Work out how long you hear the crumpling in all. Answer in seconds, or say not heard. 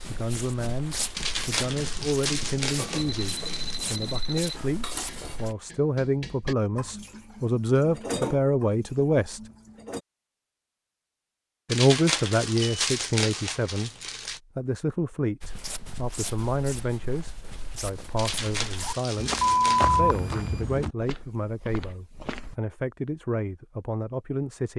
7 s.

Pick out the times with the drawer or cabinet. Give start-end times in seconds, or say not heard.
not heard.